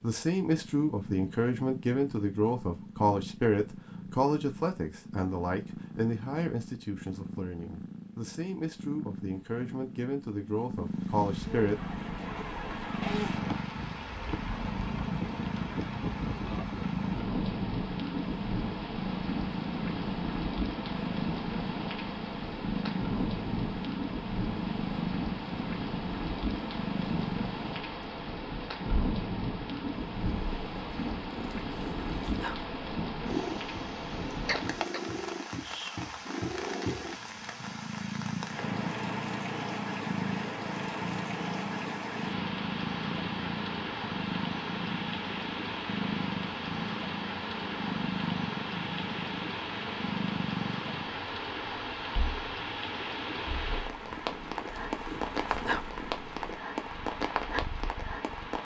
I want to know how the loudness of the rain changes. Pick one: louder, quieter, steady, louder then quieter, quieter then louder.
steady.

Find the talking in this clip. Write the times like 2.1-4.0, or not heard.
0.0-11.8.